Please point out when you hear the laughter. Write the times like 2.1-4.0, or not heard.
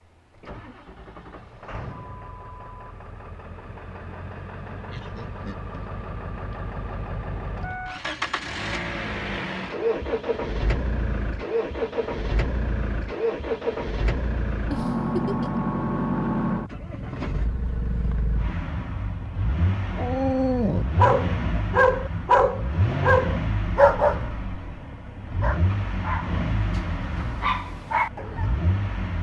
4.9-5.8, 14.7-15.7.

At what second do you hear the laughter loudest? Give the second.
15 s.